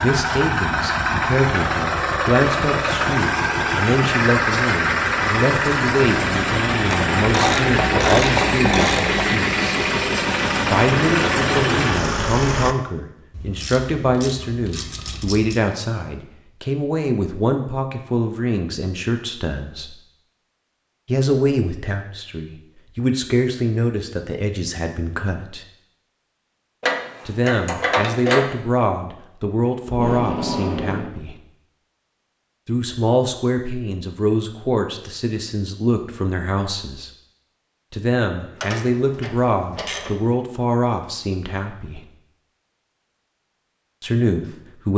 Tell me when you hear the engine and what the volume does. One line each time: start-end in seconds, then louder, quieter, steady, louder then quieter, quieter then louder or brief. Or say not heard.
0.0-12.8 steady.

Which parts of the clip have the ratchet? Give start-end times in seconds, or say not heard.
6.9-9.3, 13.3-15.6, 26.8-28.5, 38.6-40.1.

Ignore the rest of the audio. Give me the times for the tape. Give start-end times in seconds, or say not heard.
29.9-31.1.